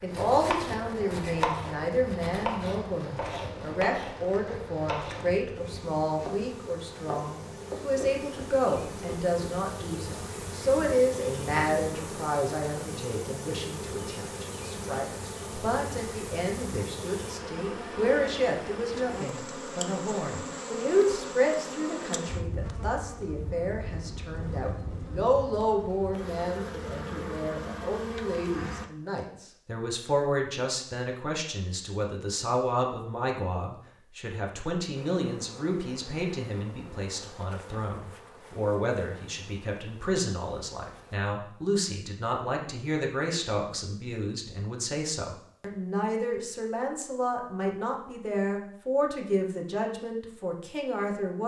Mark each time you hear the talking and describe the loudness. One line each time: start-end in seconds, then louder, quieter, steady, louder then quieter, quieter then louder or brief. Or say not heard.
0.0-51.4 steady.